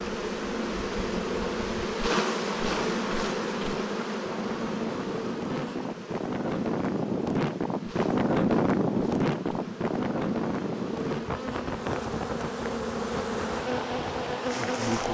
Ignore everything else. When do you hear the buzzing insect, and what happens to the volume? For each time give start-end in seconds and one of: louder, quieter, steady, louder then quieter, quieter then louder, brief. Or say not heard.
0.0-15.1 quieter then louder.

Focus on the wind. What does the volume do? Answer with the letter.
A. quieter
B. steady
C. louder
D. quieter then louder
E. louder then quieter
E.